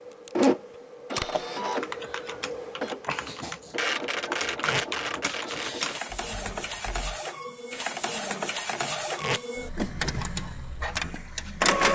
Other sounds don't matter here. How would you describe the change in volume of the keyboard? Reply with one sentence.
The loudness of the keyboard goes up.